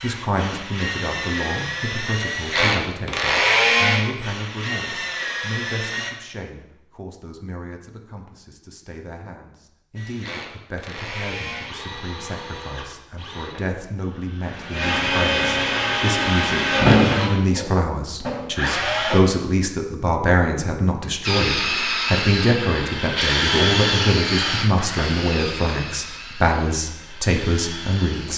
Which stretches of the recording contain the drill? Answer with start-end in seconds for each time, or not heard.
0.0-6.1, 9.9-19.2, 21.2-28.3.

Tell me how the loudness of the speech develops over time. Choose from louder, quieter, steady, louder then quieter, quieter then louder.
quieter then louder.